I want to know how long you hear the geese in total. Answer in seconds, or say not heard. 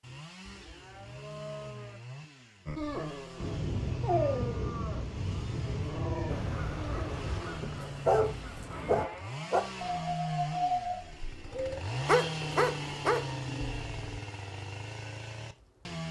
3 s.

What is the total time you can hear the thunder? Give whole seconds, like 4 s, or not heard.
4 s.